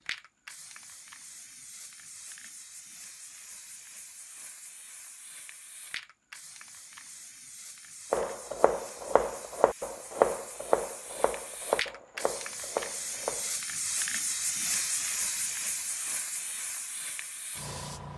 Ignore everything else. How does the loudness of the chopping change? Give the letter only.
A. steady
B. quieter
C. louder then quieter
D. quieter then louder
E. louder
C.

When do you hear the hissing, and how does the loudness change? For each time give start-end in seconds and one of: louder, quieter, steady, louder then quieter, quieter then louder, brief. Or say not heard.
0.0-18.1 louder.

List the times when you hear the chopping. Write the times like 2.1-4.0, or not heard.
8.1-13.6.